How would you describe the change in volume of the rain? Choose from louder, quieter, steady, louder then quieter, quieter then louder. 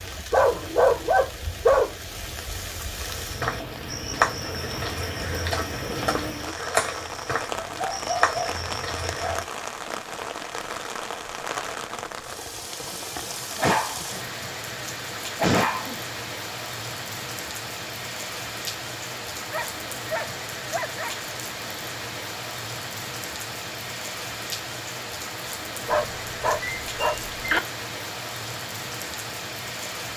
steady.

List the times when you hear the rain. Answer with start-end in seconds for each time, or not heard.
0.0-30.1.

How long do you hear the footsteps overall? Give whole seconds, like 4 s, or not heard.
6 s.